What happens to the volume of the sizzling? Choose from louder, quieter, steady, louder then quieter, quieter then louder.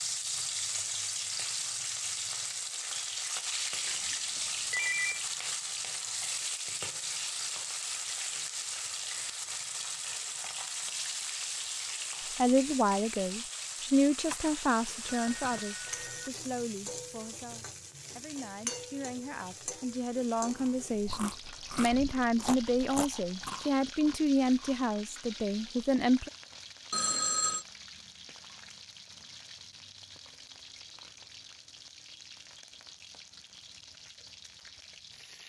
quieter.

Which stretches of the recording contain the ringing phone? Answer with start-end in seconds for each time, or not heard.
3.9-5.2, 14.3-16.3, 26.9-27.6.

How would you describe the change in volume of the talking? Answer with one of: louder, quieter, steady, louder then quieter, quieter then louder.
quieter then louder.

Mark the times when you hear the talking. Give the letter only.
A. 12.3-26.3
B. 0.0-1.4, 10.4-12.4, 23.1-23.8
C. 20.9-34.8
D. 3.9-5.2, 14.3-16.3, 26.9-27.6
A.